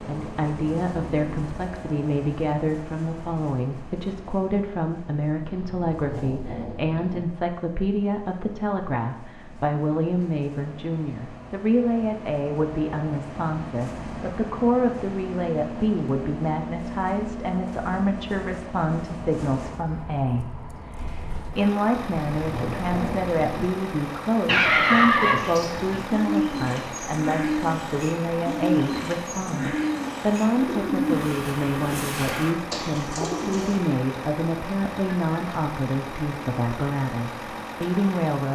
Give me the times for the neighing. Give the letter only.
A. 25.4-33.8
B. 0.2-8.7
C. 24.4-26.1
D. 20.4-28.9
C.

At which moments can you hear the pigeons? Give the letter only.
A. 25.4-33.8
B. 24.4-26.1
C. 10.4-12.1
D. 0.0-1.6
A.